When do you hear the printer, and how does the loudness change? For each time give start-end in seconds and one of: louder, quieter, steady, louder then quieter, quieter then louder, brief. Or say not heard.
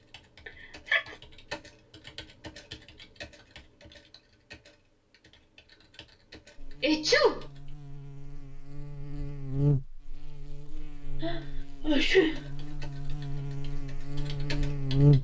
not heard.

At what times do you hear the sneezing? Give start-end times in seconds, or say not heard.
0.5-1.1, 6.8-7.5, 11.2-12.4.